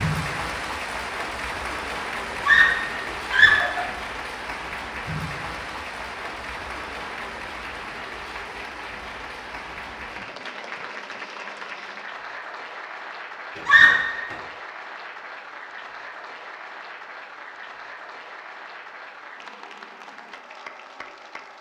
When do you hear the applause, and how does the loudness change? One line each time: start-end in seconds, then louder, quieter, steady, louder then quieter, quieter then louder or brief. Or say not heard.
0.0-21.5 quieter.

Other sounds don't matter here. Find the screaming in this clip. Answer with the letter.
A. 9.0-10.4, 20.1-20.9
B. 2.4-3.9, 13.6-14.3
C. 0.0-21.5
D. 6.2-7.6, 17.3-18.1
B.